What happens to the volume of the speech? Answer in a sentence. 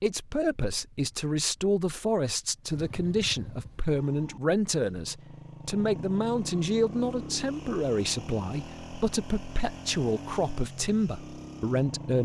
The loudness of the speech stays about the same.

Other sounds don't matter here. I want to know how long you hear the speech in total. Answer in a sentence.
The speech can be heard for 12 seconds in total.